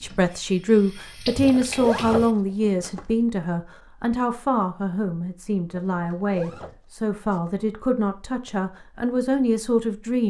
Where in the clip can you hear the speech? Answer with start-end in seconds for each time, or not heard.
0.0-10.2.